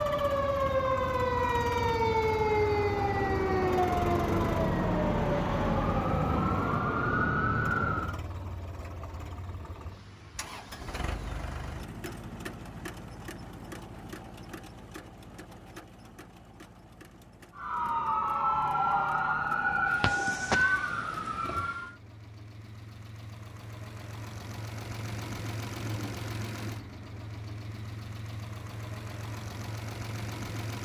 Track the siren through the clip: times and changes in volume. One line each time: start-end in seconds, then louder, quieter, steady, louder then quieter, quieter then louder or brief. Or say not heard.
0.0-8.2 steady
17.6-21.9 quieter.